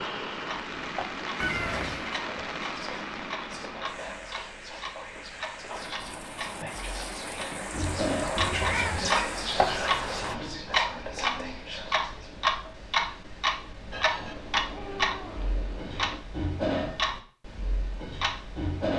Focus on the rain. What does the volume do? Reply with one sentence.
The volume of the rain goes down, then up.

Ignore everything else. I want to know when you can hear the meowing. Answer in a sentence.
The meowing can be heard from 1.4 to 2.1 s, from 8.3 to 9.2 s and from 14.2 to 16.2 s.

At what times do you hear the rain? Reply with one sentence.
You can hear the rain from 0.0 to 10.4 s.